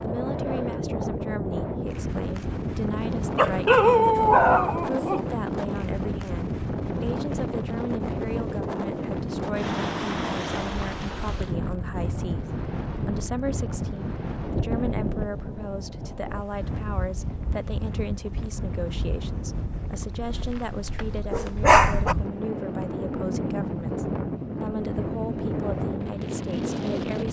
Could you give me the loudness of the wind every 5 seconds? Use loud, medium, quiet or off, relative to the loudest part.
loud, loud, loud, medium, loud, loud.